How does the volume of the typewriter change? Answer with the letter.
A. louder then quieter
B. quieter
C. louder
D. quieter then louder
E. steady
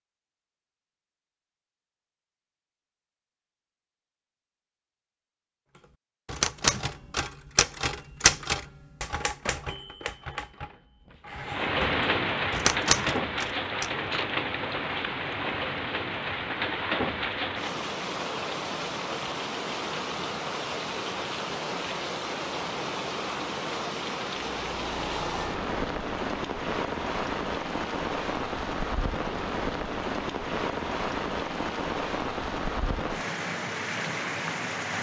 D.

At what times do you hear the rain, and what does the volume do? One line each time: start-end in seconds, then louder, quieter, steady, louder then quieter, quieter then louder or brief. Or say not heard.
11.4-34.9 steady.